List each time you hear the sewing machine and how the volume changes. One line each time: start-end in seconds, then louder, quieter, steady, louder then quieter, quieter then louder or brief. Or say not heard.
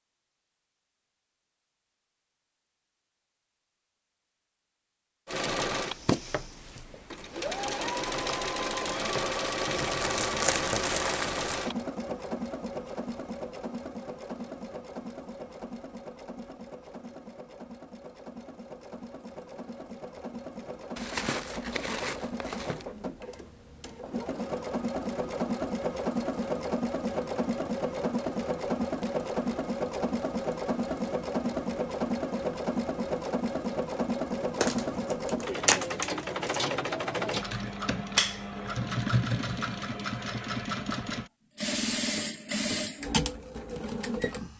5.2-44.5 quieter then louder.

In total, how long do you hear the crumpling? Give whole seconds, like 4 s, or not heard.
6 s.